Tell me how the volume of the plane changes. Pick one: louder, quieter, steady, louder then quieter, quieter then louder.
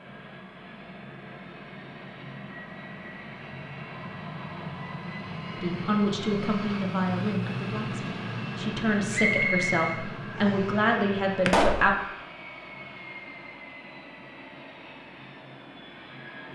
louder then quieter.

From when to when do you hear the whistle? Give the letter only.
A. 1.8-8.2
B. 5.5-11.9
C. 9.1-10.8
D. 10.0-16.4
C.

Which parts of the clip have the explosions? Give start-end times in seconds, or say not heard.
11.4-11.9.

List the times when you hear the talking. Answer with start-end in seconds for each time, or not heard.
5.5-11.9.